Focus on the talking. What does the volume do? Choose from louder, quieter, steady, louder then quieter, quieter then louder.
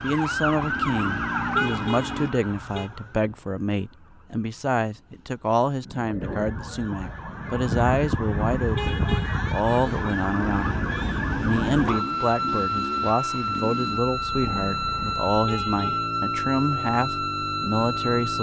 steady.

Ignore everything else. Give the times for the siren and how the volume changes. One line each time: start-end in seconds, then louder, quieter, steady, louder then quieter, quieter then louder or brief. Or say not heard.
0.0-18.3 quieter then louder.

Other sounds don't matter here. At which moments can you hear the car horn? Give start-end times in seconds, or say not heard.
1.6-2.9, 8.8-9.4, 15.4-16.1.